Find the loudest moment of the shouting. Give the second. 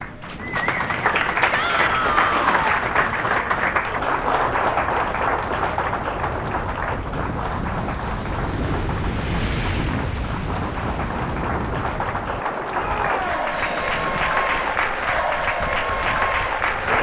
2 s.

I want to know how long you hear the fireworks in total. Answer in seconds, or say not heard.
not heard.